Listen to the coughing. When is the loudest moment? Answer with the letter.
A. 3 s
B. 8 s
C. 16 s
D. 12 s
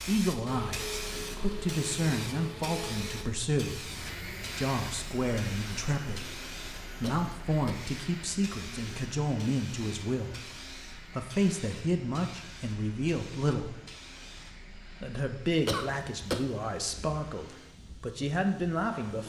C.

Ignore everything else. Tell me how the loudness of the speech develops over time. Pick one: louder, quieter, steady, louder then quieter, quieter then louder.
steady.